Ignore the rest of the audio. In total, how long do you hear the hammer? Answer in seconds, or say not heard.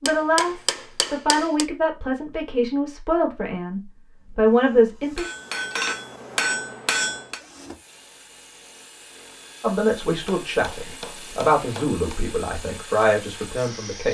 6 s.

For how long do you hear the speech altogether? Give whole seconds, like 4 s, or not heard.
10 s.